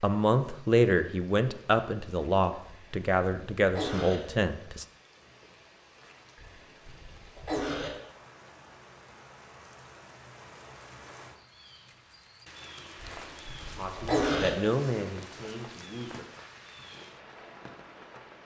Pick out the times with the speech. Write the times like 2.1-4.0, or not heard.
0.0-4.8, 13.7-16.2.